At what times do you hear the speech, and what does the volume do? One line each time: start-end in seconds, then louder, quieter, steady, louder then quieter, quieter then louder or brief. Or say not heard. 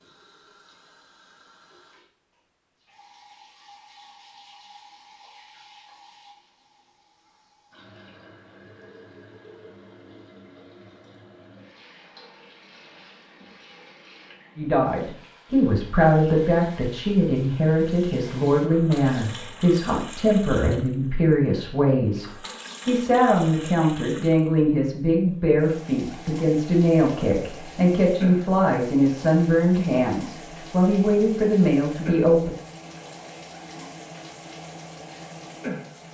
14.6-32.5 steady.